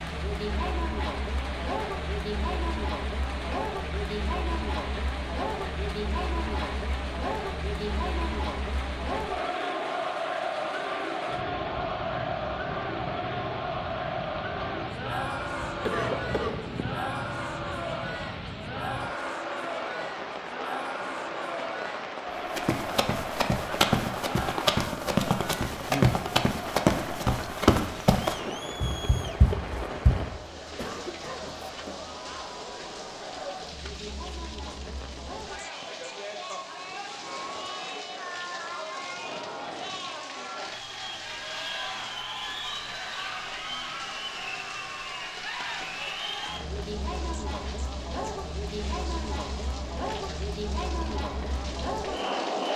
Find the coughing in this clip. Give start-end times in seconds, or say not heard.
15.8-17.1, 30.8-31.6.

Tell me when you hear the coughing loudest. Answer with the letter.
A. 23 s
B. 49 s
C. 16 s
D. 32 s
C.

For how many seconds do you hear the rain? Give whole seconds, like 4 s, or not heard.
53 s.